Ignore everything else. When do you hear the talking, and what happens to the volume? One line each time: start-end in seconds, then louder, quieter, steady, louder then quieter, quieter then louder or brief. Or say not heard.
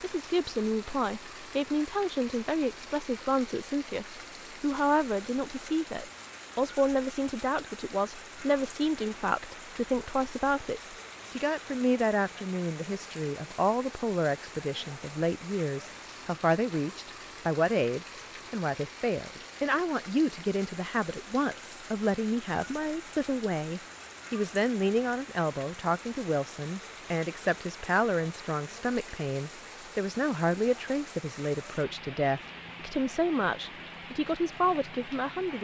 0.0-35.5 steady.